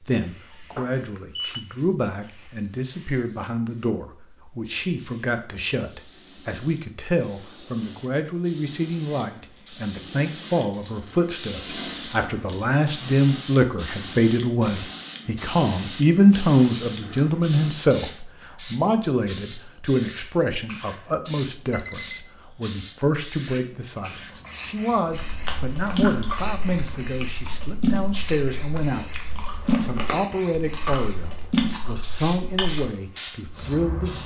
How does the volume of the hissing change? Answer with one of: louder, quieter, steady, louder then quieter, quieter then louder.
louder.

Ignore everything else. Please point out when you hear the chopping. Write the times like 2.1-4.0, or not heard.
not heard.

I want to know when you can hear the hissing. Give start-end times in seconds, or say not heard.
0.1-34.2.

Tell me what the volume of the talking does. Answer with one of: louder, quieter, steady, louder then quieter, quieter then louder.
louder then quieter.